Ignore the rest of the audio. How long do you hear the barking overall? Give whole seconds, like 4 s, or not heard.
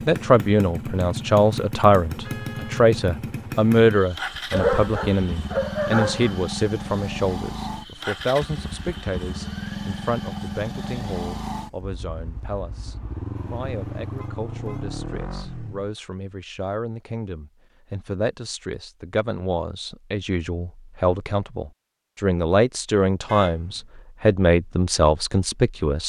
2 s.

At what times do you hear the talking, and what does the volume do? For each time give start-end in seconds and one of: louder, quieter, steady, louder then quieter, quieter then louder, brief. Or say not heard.
0.1-26.0 quieter then louder.